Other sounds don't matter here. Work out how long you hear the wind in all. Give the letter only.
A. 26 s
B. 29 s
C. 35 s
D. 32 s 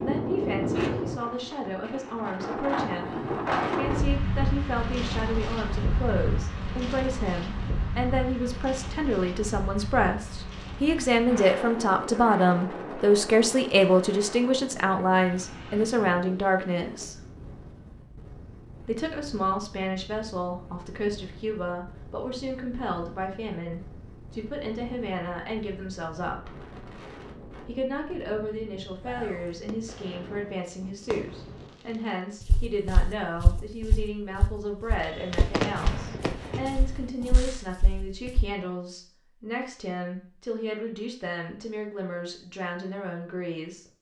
D.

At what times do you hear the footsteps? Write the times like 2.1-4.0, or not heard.
32.5-38.5.